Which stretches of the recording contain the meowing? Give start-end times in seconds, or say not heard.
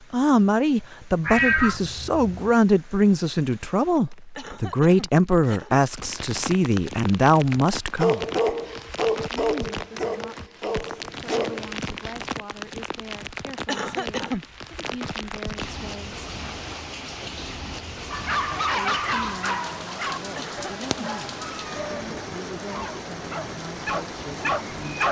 1.2-2.5, 20.9-22.0.